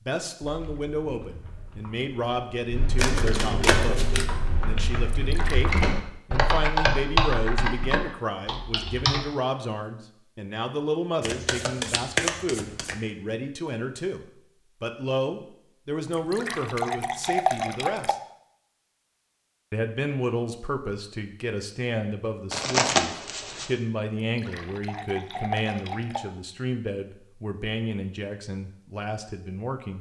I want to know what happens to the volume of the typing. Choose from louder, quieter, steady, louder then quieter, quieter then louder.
louder then quieter.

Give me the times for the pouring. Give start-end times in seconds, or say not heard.
5.1-5.8, 16.1-18.1, 24.2-26.2.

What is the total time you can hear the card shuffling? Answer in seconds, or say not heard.
4 s.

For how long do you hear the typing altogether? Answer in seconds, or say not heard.
9 s.